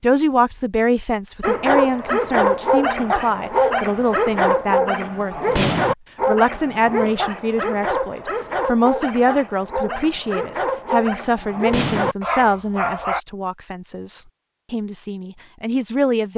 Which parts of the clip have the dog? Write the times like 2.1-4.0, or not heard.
1.4-13.2.